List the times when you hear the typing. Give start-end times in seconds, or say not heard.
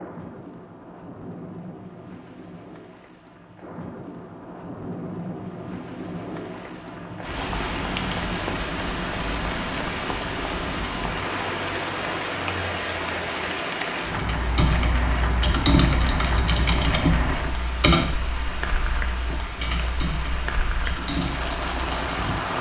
14.1-22.4.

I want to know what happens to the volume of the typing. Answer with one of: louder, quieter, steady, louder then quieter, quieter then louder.
quieter.